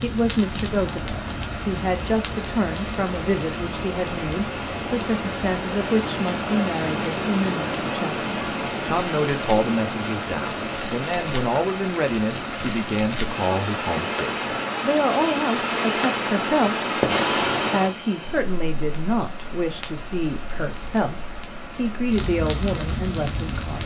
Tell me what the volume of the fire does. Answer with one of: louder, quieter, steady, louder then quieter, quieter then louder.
louder then quieter.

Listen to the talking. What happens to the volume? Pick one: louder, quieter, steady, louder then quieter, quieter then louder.
steady.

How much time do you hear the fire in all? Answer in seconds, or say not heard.
24 s.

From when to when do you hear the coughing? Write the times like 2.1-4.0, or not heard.
not heard.